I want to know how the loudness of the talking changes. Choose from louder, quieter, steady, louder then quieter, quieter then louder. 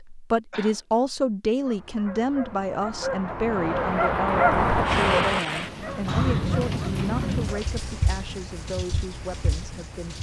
quieter.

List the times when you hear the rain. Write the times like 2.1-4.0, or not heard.
4.8-10.1.